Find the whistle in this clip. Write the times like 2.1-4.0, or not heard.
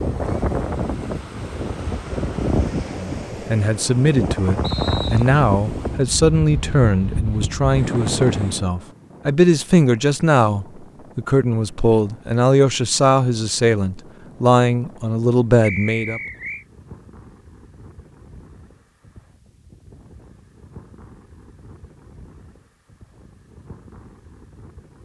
4.6-5.2, 15.6-16.6.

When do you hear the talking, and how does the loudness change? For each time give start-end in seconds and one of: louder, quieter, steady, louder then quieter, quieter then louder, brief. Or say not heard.
3.0-16.2 steady.